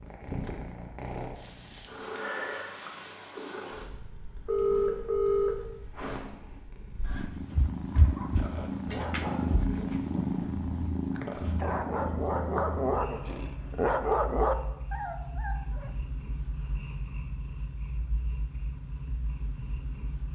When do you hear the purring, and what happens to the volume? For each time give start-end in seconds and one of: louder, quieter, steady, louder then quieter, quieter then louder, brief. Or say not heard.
0.0-20.2 louder then quieter.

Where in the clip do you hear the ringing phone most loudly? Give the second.
5 s.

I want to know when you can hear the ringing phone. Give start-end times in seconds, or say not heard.
4.5-6.2.